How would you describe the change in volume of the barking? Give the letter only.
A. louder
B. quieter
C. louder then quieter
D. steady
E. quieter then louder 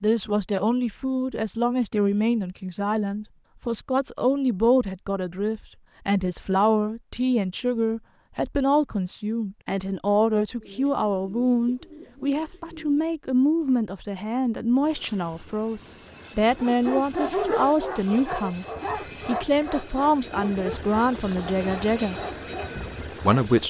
B.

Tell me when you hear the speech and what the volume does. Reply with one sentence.
The speech can be heard from 0.0 to 23.6 s, at a steady volume.